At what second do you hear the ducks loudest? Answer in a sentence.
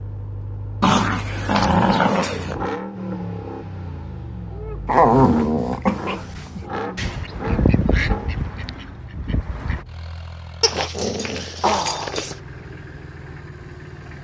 The loudest moment of the ducks is at 8 seconds.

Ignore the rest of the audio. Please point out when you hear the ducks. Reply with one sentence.
The ducks can be heard from 7.0 to 9.8 s.